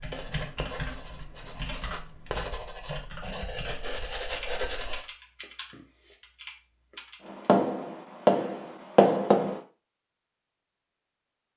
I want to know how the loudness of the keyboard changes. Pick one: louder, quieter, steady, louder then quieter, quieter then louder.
quieter.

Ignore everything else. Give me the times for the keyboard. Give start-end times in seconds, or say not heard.
0.0-7.5.